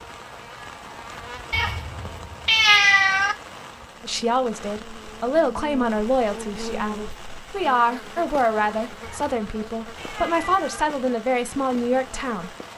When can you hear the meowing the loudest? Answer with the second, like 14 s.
3 s.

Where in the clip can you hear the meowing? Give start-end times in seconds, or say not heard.
1.5-3.4, 9.0-10.8.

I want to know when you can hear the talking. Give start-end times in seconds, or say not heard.
4.0-12.7.